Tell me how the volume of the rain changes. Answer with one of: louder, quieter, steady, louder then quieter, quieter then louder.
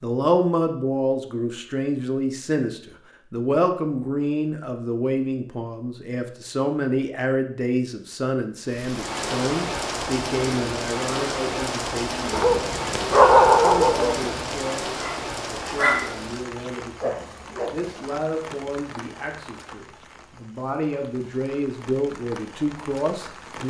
quieter.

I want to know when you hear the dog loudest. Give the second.
13 s.